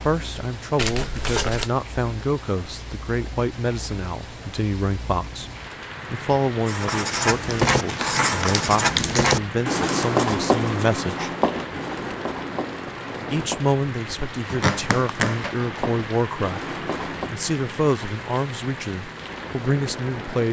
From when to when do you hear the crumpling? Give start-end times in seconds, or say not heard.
0.8-1.7, 7.5-9.3, 14.4-15.6.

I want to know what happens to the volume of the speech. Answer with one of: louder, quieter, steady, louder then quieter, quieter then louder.
steady.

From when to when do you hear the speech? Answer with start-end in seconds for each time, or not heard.
0.0-5.5, 6.1-11.3, 13.3-16.6, 17.3-20.4.